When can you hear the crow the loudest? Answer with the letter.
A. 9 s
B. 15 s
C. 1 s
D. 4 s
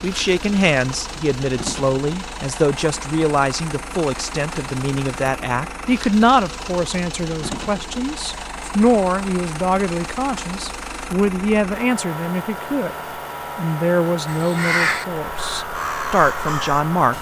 B.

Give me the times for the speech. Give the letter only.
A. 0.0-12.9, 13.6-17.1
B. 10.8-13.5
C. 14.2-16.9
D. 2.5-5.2
A.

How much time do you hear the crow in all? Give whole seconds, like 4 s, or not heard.
3 s.